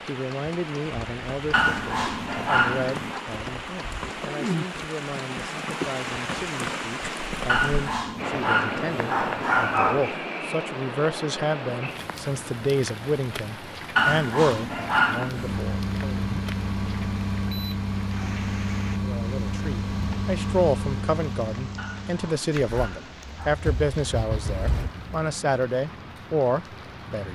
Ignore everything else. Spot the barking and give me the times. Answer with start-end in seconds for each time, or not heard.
1.5-3.2, 7.5-10.2, 13.9-15.6, 21.8-23.6.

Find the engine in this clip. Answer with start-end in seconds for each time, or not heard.
15.2-25.1.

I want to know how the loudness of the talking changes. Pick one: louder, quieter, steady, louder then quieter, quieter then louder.
louder.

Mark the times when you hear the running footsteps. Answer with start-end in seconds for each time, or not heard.
not heard.